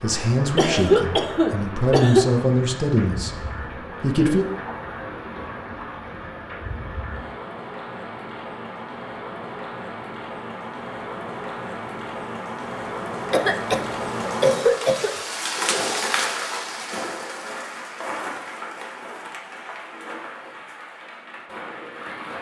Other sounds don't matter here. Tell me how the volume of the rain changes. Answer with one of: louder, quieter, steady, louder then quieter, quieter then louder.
louder then quieter.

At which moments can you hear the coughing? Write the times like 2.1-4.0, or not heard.
0.6-2.2, 13.3-15.2.